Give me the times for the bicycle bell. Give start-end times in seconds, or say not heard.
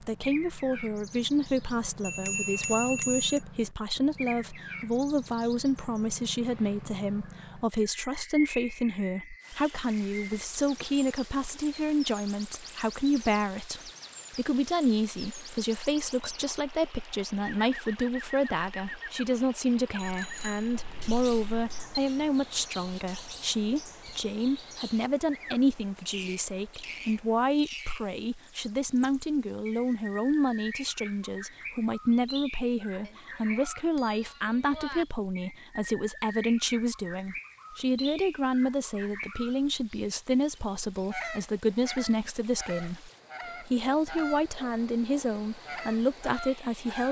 2.0-3.4, 19.9-22.0, 33.0-35.0.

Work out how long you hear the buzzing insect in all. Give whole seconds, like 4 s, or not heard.
not heard.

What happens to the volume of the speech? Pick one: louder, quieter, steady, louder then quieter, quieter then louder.
steady.